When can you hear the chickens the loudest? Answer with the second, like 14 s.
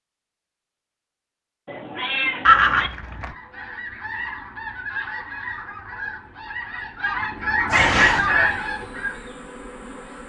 8 s.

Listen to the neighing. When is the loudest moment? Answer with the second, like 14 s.
3 s.